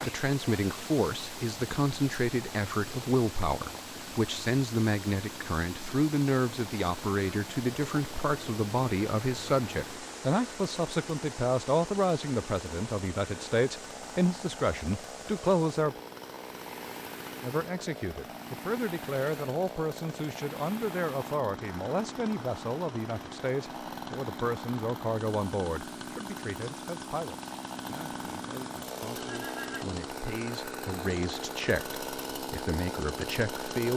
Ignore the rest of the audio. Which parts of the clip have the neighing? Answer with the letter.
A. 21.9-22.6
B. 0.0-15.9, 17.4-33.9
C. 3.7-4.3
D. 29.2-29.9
D.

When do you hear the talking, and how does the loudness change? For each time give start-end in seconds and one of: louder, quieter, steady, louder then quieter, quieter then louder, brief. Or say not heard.
0.0-15.9 steady
17.4-33.9 quieter then louder.